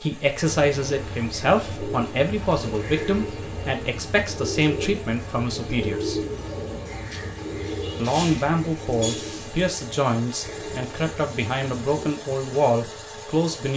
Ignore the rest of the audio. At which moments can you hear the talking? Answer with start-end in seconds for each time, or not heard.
0.0-6.2, 8.0-13.7.